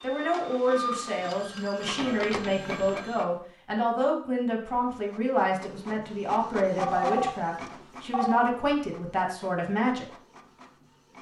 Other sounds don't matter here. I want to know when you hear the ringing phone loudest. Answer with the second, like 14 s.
7 s.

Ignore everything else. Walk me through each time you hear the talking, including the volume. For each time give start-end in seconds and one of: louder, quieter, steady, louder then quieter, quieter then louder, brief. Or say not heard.
0.0-10.1 steady.